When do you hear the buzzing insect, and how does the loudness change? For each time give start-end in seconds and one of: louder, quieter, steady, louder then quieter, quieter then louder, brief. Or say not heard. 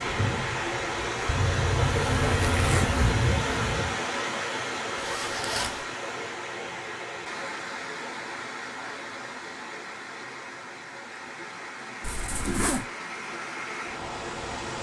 0.0-4.0 louder.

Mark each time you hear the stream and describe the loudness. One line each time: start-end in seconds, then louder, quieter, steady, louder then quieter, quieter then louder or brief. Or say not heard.
0.0-14.7 quieter.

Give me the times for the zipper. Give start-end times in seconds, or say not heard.
1.2-3.0, 5.0-5.8, 12.0-12.8.